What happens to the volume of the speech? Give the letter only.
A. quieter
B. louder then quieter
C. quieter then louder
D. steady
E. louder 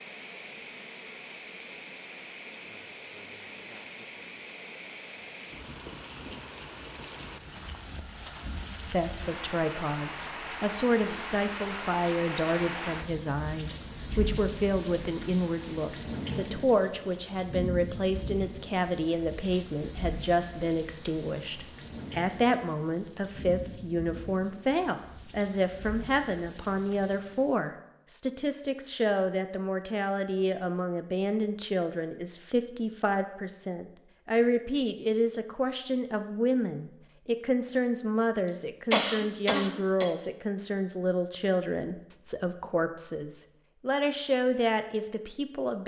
D.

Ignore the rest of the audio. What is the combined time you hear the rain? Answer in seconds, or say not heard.
28 s.